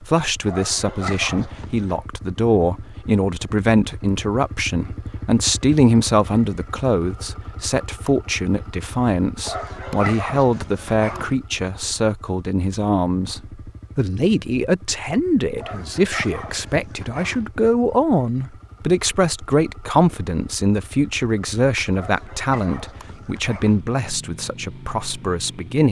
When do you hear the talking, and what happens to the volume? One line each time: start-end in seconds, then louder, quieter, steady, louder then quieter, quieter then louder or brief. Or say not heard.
0.0-25.8 steady.